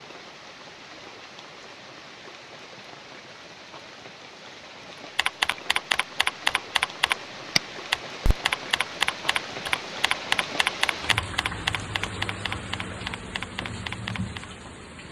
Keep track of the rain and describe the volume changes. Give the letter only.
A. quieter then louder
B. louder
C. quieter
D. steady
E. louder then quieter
B.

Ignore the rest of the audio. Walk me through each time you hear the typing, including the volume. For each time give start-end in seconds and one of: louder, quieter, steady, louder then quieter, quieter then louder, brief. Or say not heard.
5.2-14.4 quieter.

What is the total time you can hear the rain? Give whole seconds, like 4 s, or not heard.
15 s.